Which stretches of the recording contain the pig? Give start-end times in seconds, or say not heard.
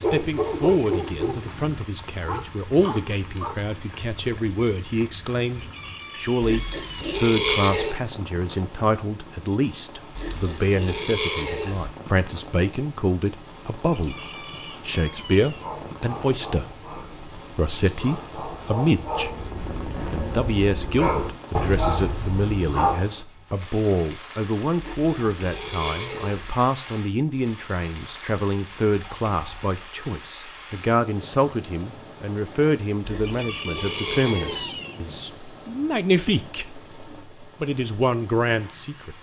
6.4-8.0, 10.2-11.9, 24.8-26.4, 33.0-34.6.